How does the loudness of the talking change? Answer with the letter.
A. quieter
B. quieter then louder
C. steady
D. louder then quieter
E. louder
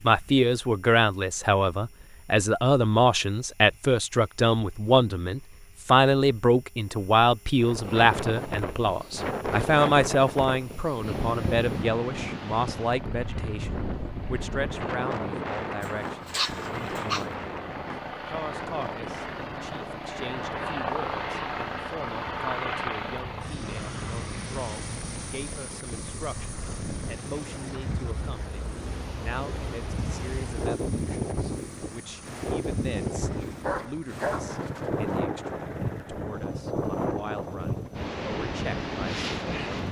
A.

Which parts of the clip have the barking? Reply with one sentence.
The barking can be heard from 15.8 to 17.2 s and from 33.3 to 35.0 s.